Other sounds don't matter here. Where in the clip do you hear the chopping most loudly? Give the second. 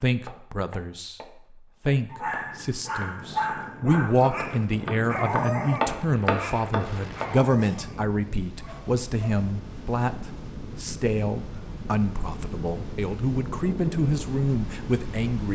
6 s.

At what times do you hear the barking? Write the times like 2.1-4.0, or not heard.
2.1-9.4.